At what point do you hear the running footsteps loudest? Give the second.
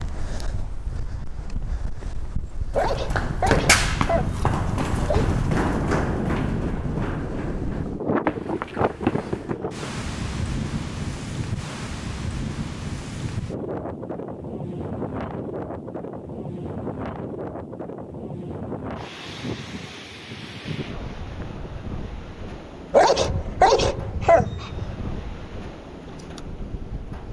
4 s.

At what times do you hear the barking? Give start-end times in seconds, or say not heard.
2.8-5.3, 22.9-24.9.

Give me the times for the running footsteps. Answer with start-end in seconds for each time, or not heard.
2.7-9.6.